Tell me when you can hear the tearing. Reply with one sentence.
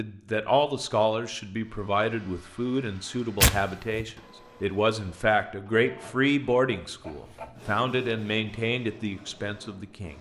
The tearing can be heard from 3.4 to 4.0 s.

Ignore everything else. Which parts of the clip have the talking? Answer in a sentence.
The talking can be heard from 0.0 to 10.1 s.